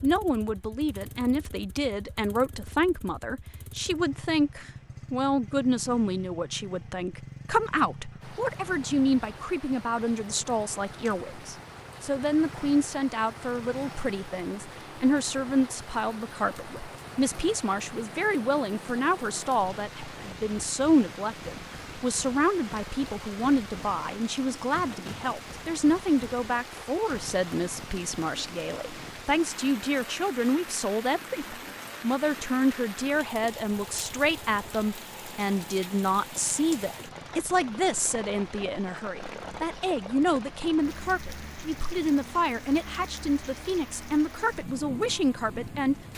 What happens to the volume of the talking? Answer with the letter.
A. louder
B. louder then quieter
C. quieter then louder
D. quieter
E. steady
E.